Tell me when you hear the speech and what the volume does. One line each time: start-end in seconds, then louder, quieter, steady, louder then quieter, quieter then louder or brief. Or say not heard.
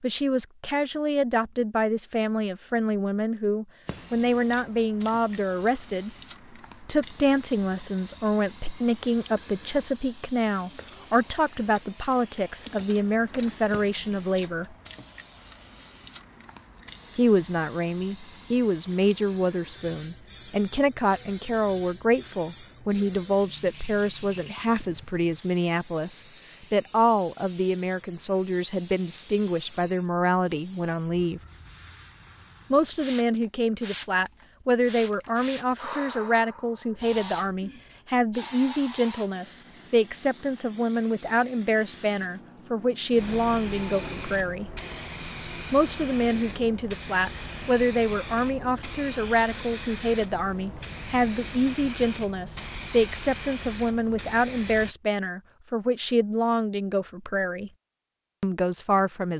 0.0-6.1 steady
6.8-14.8 steady
17.1-31.4 steady
32.7-44.7 steady
45.7-57.7 steady
58.4-59.3 brief.